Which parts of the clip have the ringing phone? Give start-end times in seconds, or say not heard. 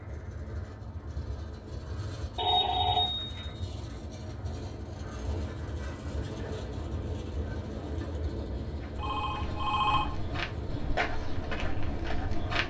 2.4-3.5, 8.9-10.2.